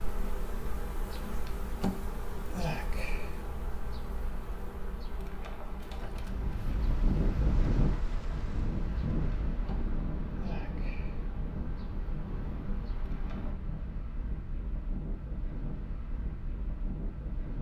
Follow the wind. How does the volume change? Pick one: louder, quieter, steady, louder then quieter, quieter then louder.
quieter.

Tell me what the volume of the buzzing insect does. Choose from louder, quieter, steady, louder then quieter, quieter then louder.
quieter.